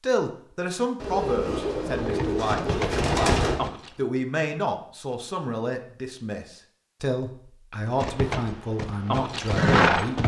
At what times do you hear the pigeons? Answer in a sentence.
You can hear the pigeons from 0.9 to 3.6 s.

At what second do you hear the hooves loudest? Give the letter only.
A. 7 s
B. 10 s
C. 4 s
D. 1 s
B.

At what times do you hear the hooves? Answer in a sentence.
You can hear the hooves from 1.9 to 4.0 s and from 8.0 to 10.2 s.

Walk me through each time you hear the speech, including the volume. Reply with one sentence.
You can hear the speech from 0.0 to 10.2 s, at a steady volume.